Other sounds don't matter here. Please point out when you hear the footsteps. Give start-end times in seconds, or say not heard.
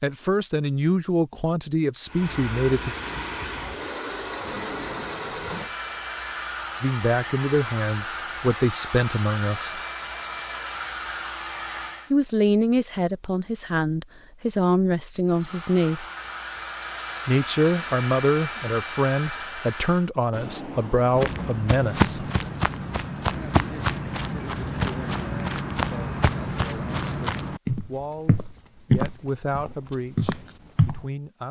21.1-31.1.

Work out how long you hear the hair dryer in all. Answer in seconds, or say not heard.
15 s.